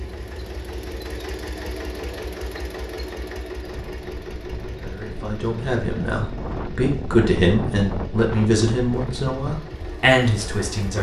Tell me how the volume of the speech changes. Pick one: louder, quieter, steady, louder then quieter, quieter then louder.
louder.